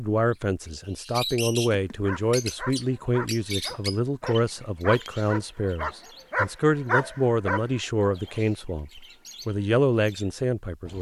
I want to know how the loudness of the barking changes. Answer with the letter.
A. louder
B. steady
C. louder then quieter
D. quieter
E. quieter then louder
A.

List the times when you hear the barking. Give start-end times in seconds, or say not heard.
2.0-8.4.